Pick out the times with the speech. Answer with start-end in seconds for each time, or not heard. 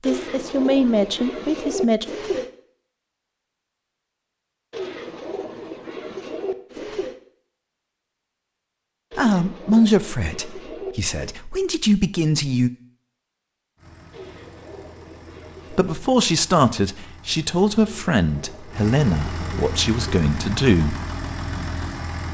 0.0-2.0, 9.2-12.7, 15.7-20.9.